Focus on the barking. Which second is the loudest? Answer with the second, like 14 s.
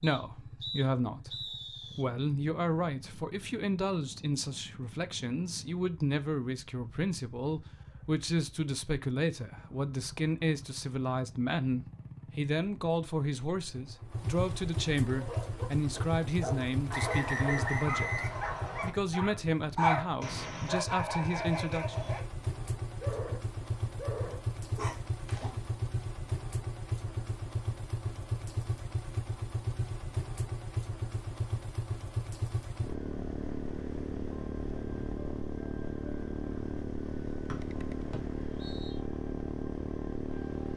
20 s.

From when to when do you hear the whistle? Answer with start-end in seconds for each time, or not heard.
0.0-2.0, 16.9-18.9, 37.5-39.0.